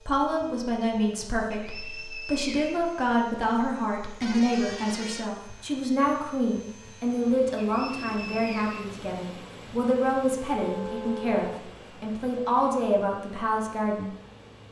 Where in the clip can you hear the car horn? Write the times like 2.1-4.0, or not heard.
4.2-5.3, 10.5-11.4.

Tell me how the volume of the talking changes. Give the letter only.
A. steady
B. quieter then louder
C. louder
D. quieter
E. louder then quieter
A.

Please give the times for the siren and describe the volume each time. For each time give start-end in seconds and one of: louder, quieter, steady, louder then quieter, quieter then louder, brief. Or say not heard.
not heard.